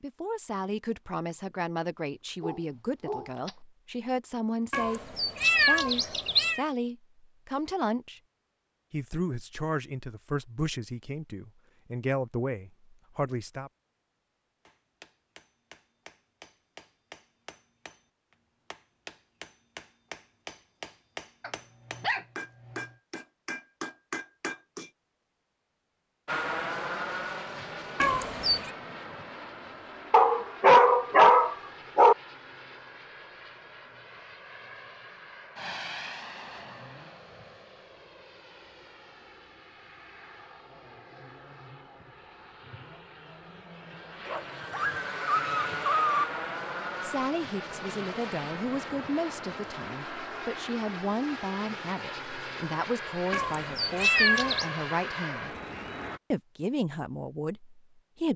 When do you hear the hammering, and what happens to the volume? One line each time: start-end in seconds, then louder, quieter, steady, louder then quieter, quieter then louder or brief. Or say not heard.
14.7-24.9 louder.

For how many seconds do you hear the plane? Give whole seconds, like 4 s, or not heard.
30 s.